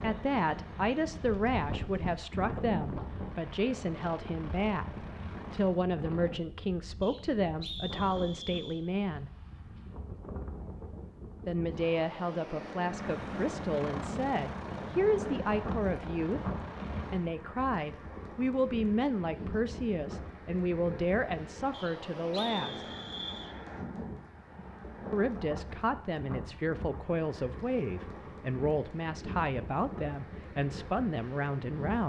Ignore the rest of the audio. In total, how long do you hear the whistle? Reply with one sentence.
The whistle can be heard for 4 seconds in total.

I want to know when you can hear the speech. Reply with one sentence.
The speech can be heard from 0.0 to 9.3 s, from 11.4 to 16.4 s, from 17.1 to 22.9 s and from 25.1 to 32.0 s.